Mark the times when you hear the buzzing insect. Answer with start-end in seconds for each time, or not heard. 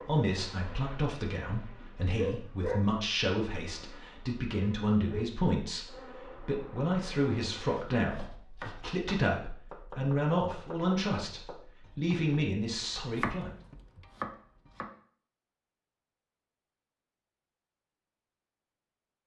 0.0-7.8.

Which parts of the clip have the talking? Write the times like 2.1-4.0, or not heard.
0.0-13.5.